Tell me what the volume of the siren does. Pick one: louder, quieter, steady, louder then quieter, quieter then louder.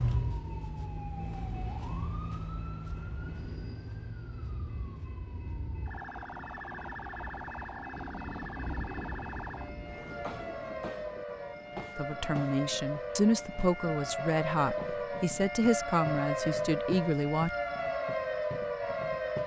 louder.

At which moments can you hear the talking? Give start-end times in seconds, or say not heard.
11.9-17.5.